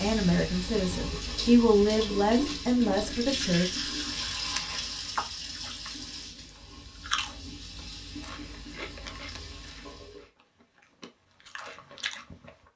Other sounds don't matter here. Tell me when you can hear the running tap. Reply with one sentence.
The running tap can be heard from 0.0 to 10.3 s.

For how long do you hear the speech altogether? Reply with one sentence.
You can hear the speech for 4 seconds altogether.